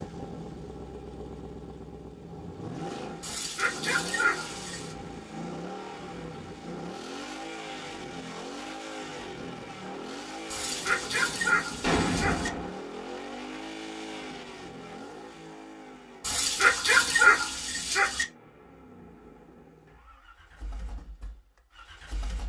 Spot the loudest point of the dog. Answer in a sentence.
The loudest moment of the dog is at 17 seconds.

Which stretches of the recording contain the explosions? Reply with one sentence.
The explosions can be heard from 11.8 to 12.7 s.